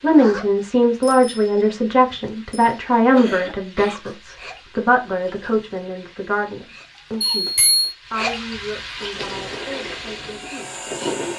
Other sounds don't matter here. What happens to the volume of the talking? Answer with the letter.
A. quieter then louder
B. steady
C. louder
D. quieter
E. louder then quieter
D.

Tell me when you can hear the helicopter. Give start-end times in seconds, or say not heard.
9.1-11.3.